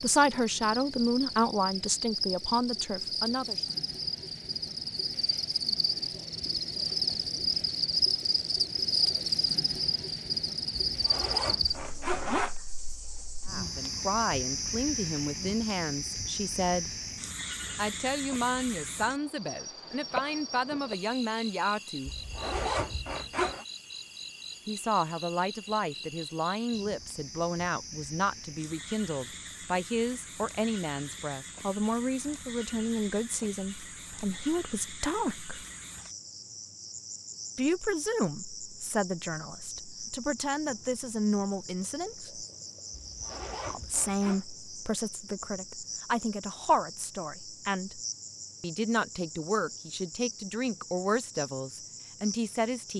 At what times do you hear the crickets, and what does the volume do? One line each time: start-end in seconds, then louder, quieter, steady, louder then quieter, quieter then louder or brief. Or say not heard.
0.0-52.9 quieter.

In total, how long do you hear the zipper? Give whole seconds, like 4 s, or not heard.
5 s.